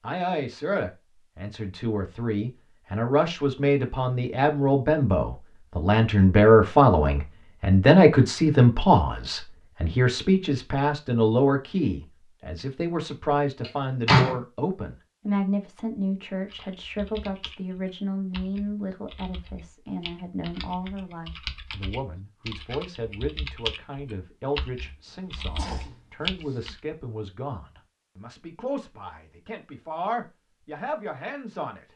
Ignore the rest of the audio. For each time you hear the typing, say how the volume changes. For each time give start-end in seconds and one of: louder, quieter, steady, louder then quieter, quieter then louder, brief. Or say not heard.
16.4-26.8 louder.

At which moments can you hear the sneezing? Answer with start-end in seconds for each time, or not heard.
25.1-26.8.